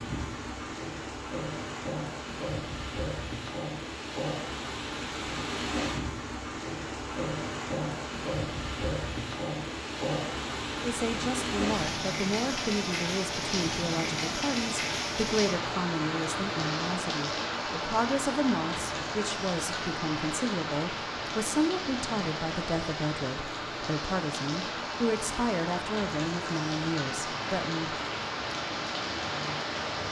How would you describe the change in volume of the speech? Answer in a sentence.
The loudness of the speech stays about the same.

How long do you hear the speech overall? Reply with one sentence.
The speech can be heard for 17 seconds in total.